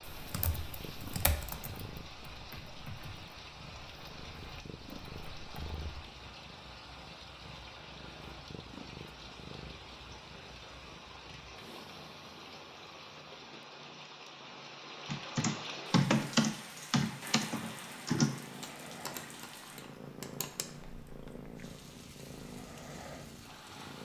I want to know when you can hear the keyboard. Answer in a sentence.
The keyboard can be heard from 0.0 to 6.0 s and from 15.1 to 20.6 s.